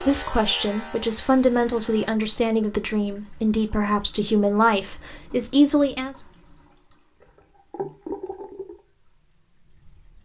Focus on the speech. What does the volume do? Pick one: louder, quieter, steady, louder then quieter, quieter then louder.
steady.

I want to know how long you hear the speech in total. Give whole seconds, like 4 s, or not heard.
6 s.